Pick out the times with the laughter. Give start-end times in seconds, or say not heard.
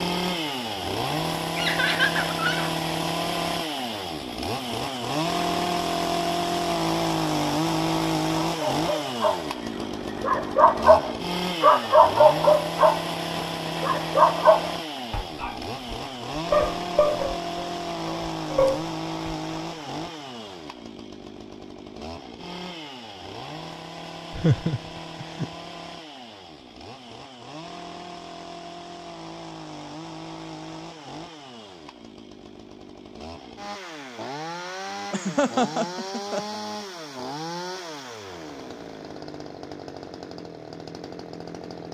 1.6-2.7, 24.3-25.4, 35.1-36.6.